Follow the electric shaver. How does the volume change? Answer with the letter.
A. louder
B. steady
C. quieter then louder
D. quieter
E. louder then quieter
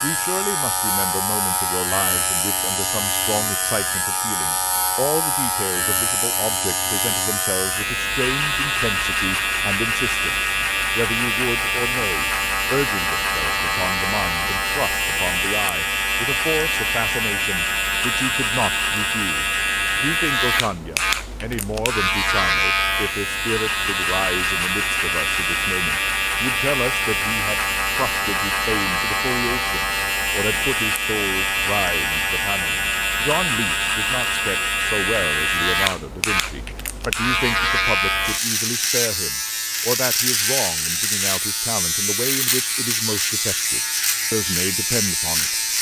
B.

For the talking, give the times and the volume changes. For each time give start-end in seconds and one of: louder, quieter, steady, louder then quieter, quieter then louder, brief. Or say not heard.
0.0-45.5 steady.